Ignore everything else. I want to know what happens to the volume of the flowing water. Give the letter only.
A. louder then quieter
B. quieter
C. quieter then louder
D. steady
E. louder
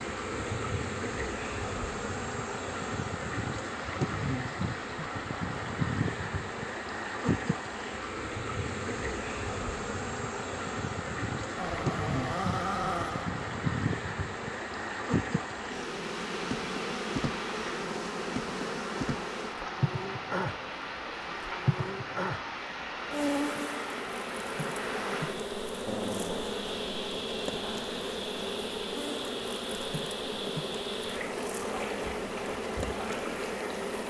D.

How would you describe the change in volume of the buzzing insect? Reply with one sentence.
The volume of the buzzing insect stays about the same.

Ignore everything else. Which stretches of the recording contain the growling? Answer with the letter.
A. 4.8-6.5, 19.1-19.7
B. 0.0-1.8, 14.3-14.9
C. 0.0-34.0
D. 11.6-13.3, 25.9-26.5
D.